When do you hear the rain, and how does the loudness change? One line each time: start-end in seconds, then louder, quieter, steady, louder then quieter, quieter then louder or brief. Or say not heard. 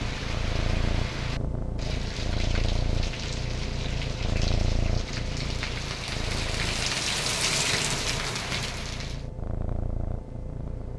0.0-9.2 louder.